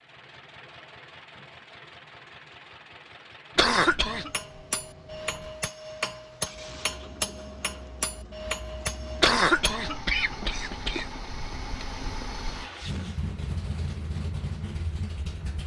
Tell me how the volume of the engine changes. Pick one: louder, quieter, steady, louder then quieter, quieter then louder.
louder.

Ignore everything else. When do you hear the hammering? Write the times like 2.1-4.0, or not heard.
4.0-9.9.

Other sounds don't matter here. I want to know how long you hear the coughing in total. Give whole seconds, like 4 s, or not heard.
3 s.